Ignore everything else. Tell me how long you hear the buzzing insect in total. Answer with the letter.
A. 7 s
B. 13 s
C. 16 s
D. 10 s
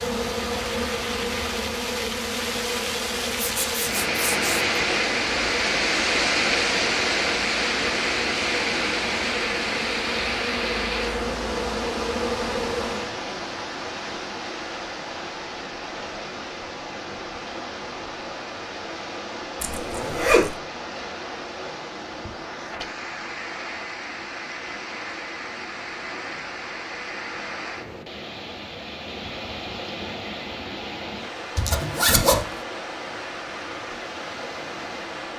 B.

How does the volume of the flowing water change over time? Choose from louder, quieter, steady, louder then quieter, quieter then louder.
quieter.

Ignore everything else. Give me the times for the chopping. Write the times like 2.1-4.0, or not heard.
not heard.